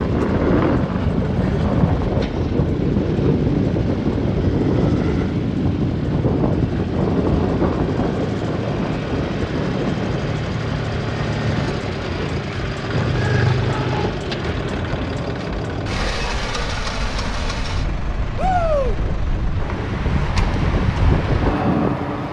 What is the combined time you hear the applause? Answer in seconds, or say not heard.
not heard.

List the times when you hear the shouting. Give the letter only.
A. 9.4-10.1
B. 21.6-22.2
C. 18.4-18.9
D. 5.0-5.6
C.